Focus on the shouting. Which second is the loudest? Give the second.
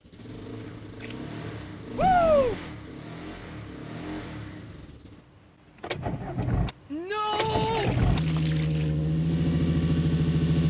2 s.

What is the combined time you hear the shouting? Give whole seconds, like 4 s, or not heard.
2 s.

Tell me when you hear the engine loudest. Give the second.
10 s.